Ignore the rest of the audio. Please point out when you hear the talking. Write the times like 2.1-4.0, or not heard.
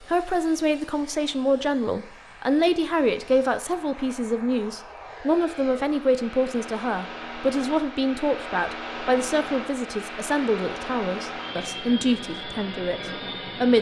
0.0-13.7.